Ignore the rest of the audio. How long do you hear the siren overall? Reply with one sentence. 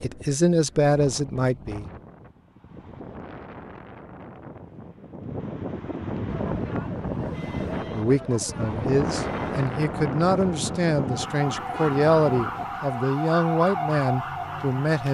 You can hear the siren for 9 seconds altogether.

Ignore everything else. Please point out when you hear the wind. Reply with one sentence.
The wind can be heard from 0.0 to 12.9 s.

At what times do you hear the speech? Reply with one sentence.
You can hear the speech from 0.0 to 1.9 s and from 7.9 to 15.1 s.